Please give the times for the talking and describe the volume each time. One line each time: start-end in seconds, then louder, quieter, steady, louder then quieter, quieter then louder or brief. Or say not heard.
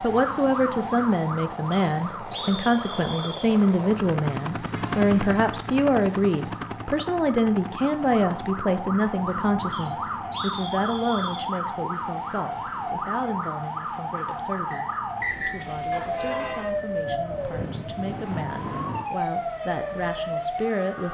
0.0-21.0 quieter.